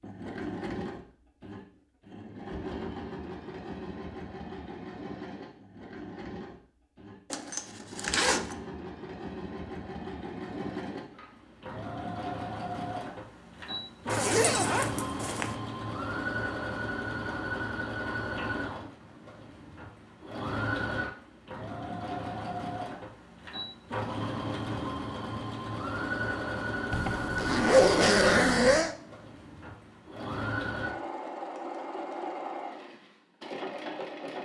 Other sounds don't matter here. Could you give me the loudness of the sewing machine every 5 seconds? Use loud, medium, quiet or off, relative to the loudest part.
medium, medium, loud, loud, loud, loud, loud.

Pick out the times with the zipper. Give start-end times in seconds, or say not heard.
7.3-8.6, 14.1-15.6, 26.9-28.9.